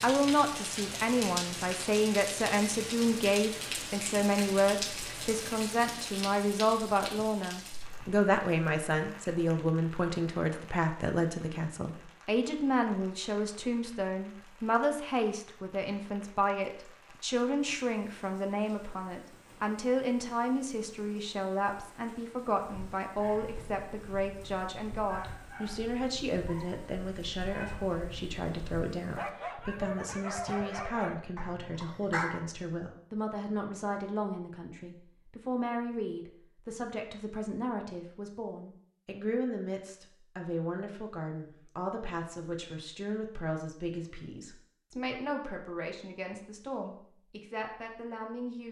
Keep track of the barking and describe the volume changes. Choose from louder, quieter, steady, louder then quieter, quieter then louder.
louder.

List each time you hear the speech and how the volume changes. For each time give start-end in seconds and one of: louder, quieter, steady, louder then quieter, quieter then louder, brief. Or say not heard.
0.0-48.6 quieter.